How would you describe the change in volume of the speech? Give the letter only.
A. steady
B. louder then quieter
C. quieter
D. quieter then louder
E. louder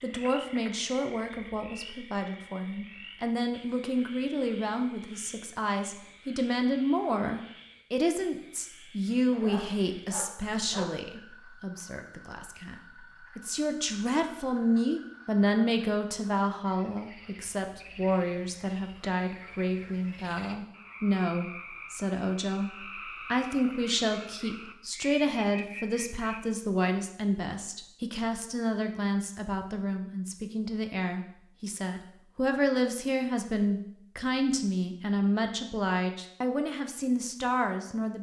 A.